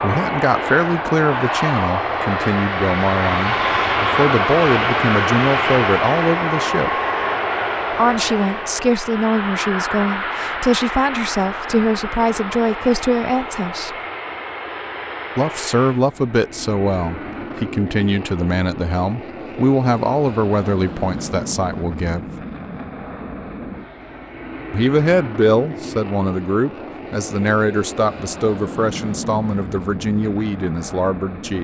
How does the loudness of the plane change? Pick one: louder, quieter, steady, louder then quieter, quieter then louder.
quieter.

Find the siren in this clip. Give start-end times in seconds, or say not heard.
not heard.